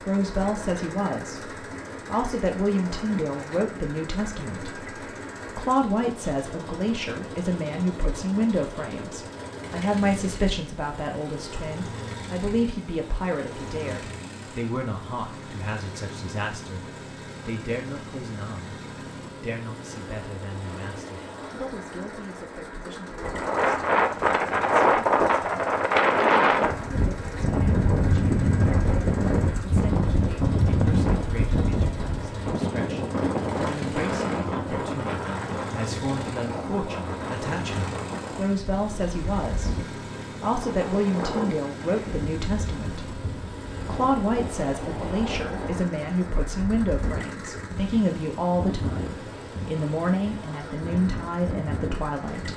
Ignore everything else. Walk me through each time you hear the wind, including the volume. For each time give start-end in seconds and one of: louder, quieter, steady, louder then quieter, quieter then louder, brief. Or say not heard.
23.2-52.5 quieter.